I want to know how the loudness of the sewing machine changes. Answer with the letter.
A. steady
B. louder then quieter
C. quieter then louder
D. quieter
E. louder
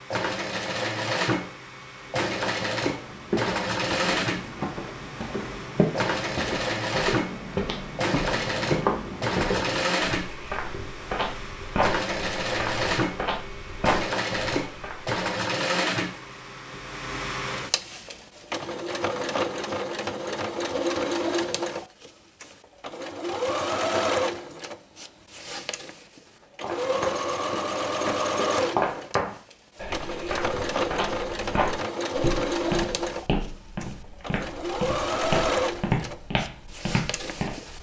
A.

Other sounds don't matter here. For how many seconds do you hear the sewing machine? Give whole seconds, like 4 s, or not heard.
38 s.